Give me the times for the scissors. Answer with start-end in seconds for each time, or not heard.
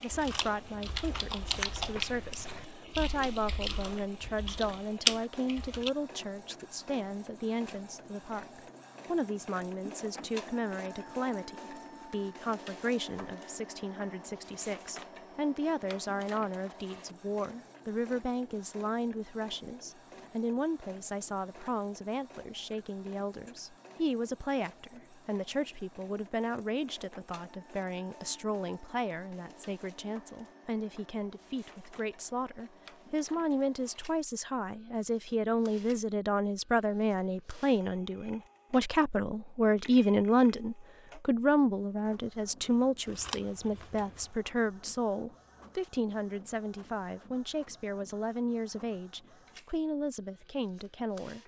0.1-2.6, 43.0-44.2.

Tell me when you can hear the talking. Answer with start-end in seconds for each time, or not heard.
0.0-51.4.